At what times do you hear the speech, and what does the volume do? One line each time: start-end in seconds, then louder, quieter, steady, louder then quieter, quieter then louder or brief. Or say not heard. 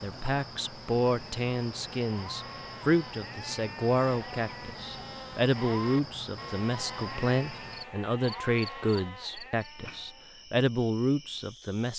0.0-11.9 steady.